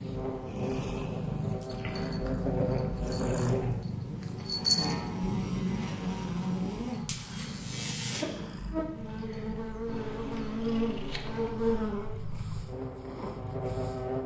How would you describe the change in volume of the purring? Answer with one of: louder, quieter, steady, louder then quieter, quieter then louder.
quieter.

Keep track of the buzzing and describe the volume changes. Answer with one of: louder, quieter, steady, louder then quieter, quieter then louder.
steady.